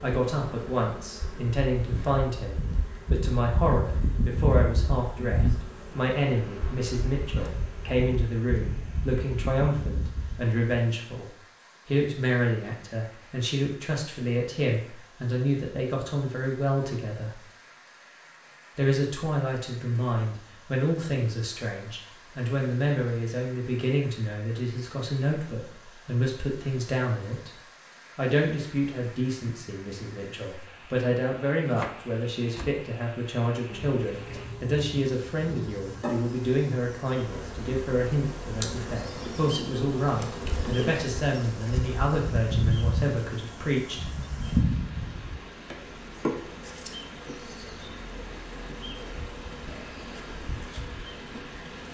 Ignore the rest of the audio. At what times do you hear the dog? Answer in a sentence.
You can't hear the dog here.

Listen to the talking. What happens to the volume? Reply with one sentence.
The volume of the talking stays about the same.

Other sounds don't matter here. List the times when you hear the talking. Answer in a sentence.
You can hear the talking from 0.0 to 17.4 s and from 18.8 to 44.0 s.